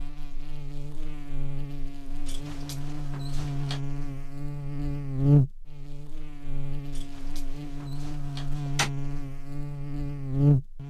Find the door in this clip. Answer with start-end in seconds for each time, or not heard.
2.2-3.8, 6.9-8.9.